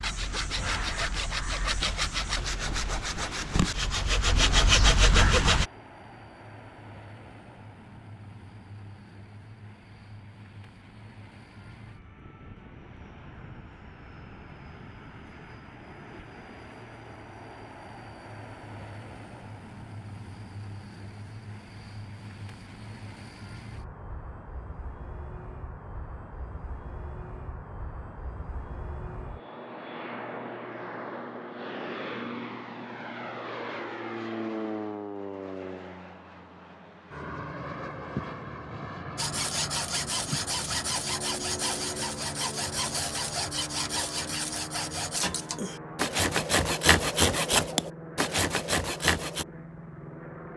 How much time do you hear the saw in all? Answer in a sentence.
You can hear the saw for 16 seconds altogether.